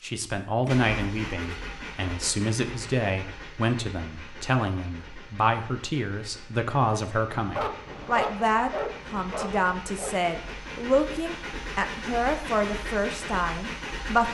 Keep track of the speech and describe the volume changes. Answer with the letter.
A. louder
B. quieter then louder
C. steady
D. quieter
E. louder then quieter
C.